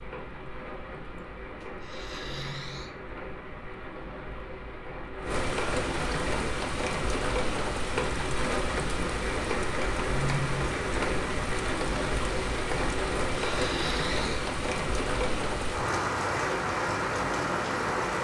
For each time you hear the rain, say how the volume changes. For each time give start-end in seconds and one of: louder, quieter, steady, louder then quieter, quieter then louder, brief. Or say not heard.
0.0-18.1 louder.